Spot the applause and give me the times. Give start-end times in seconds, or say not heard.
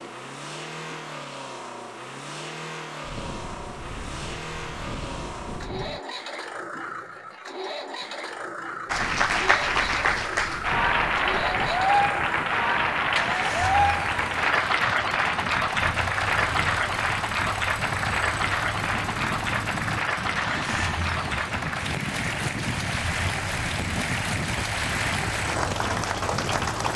8.8-26.9.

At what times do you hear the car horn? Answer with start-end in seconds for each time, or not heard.
not heard.